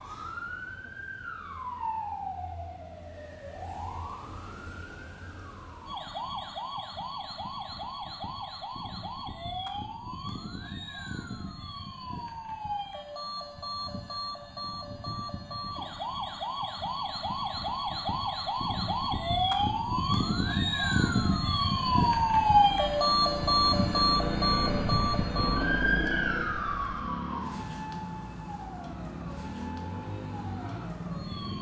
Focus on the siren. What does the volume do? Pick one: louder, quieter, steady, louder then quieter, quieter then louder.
louder then quieter.